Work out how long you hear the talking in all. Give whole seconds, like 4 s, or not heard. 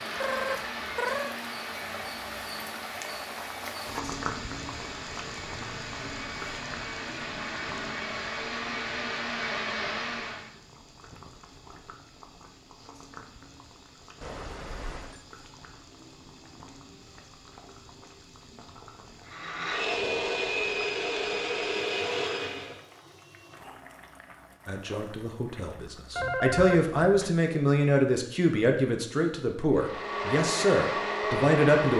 7 s.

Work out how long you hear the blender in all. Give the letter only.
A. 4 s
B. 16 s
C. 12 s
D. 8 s
B.